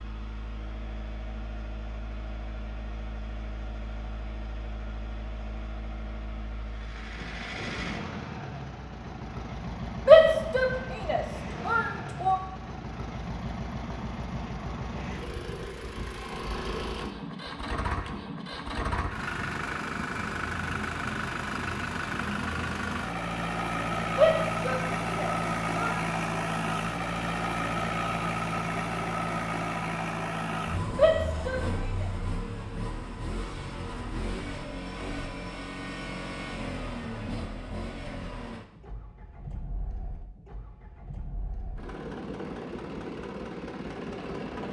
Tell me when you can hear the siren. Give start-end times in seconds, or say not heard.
not heard.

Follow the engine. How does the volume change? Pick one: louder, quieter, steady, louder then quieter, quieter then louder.
louder then quieter.